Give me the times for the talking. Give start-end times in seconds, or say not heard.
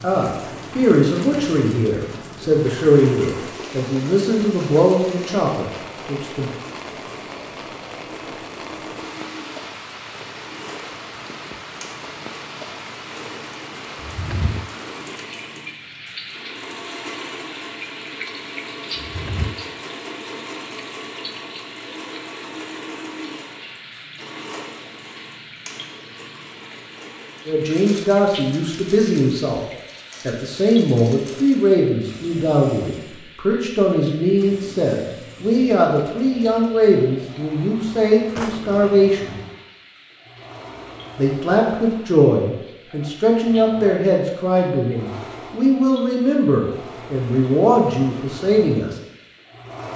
0.0-6.5, 27.4-29.6, 30.2-39.4, 41.1-49.0.